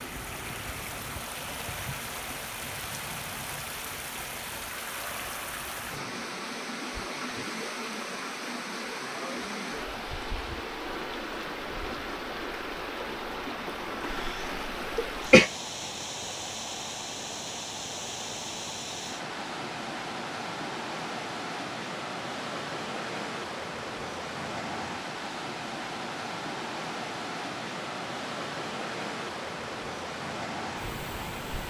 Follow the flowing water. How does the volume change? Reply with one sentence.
The volume of the flowing water stays about the same.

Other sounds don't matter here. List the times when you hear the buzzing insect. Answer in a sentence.
The buzzing insect can't be heard in this clip.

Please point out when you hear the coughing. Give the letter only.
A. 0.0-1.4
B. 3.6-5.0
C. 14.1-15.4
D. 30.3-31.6
C.